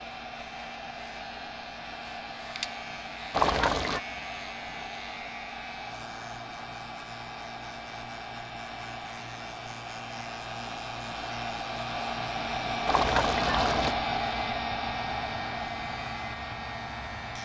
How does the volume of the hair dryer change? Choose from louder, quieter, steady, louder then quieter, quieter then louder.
louder.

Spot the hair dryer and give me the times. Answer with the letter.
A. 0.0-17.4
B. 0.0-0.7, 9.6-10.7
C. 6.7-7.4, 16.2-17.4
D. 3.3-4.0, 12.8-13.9
A.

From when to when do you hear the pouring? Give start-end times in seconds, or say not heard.
3.3-4.0, 12.8-13.9.